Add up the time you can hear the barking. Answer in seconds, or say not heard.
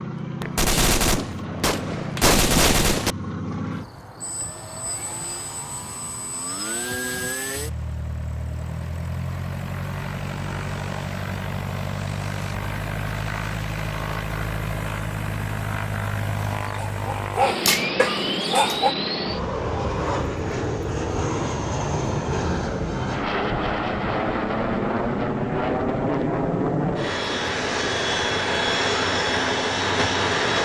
2 s.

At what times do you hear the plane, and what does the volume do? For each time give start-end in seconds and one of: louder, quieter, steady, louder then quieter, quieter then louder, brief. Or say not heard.
0.0-30.5 louder.